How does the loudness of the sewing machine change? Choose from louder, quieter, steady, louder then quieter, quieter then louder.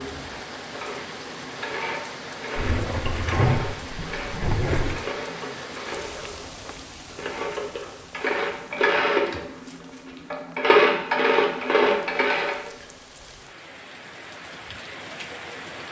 louder.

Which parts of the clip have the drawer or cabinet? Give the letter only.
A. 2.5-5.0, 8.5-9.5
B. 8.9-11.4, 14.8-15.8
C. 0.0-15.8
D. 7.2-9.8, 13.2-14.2
A.